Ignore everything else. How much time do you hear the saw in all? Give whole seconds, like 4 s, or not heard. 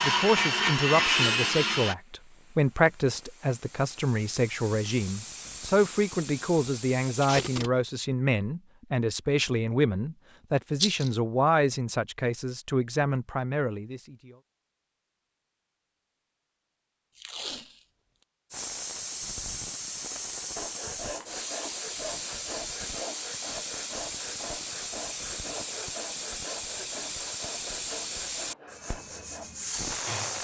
12 s.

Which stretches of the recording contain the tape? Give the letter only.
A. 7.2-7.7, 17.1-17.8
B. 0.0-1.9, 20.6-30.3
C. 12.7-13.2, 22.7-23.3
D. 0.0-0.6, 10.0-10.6
A.